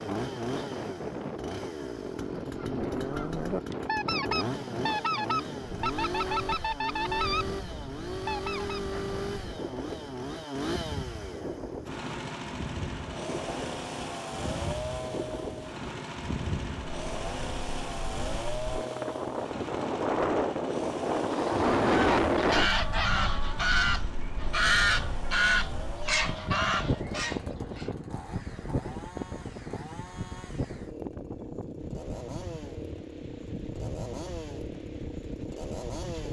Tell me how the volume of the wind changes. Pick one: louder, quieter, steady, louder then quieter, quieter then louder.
louder then quieter.